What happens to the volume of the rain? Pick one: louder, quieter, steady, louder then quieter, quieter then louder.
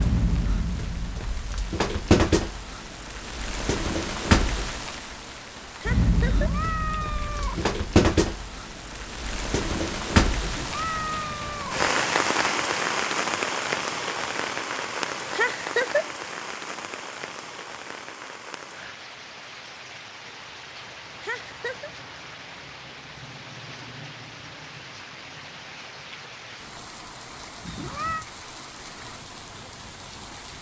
quieter.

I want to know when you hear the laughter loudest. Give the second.
16 s.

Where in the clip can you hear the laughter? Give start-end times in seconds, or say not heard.
5.8-6.5, 15.3-16.1, 21.2-21.9.